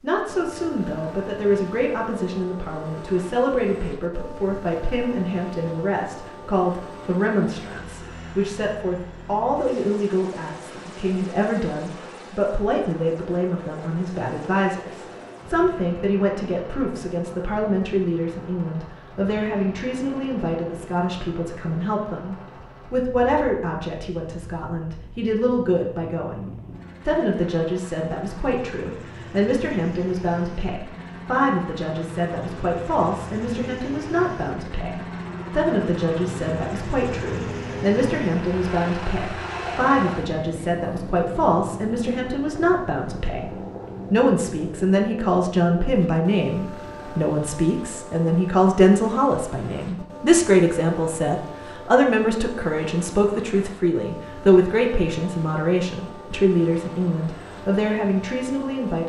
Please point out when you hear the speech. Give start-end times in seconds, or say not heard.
0.0-59.0.